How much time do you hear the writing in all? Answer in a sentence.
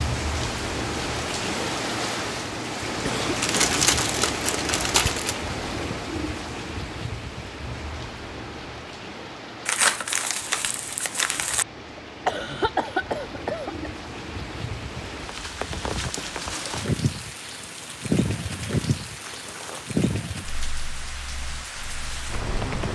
You can't hear the writing here.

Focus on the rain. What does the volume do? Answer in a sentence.
The loudness of the rain goes down, then up.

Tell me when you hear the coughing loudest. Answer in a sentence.
The loudest moment of the coughing is at 13 seconds.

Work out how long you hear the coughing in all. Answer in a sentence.
The coughing can be heard for 3 seconds in total.